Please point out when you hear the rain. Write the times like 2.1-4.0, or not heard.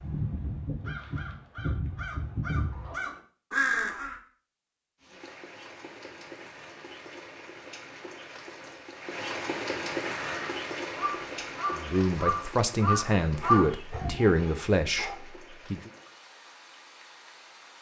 5.0-17.7.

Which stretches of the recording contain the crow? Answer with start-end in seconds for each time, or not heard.
0.0-4.2, 10.2-14.1.